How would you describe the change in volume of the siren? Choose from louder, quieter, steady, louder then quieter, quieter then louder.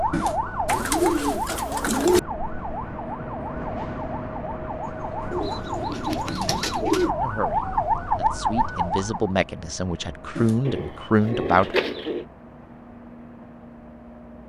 quieter then louder.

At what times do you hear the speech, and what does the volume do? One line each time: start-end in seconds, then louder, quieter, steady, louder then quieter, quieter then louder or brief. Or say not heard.
7.2-11.8 louder.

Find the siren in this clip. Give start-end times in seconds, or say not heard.
0.0-9.3.